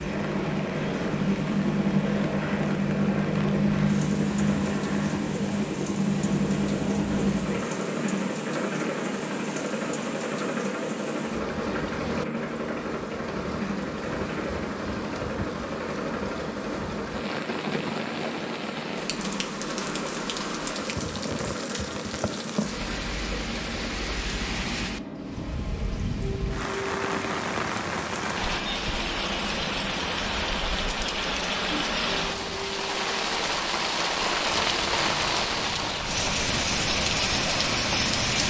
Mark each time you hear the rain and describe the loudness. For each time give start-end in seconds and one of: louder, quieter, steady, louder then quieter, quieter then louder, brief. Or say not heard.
0.2-38.4 louder.